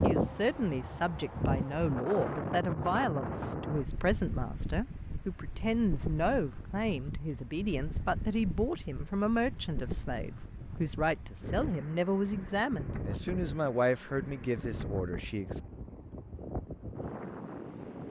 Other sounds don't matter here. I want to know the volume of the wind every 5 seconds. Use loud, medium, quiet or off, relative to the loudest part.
loud, medium, medium, medium.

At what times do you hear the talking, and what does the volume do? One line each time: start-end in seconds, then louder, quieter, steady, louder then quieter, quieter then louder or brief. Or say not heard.
0.0-15.6 steady.